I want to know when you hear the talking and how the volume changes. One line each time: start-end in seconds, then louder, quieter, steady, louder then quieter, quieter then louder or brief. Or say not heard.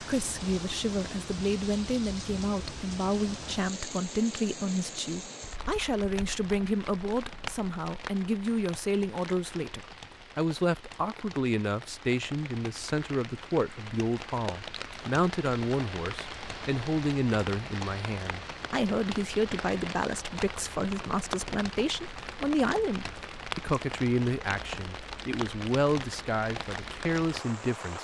0.0-27.9 steady.